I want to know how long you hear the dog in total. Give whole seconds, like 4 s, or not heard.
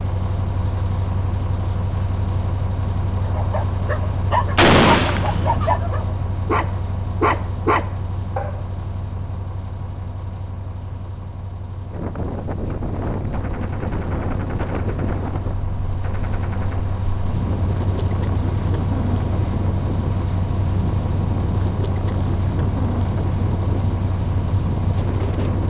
5 s.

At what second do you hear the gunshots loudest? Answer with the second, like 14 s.
5 s.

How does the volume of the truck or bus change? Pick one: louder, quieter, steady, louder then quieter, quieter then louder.
quieter then louder.